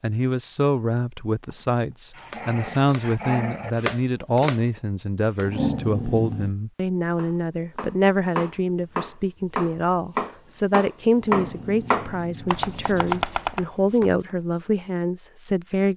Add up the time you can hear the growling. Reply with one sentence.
The growling can be heard for 5 seconds in total.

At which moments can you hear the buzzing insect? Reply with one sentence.
The buzzing insect can't be heard in this clip.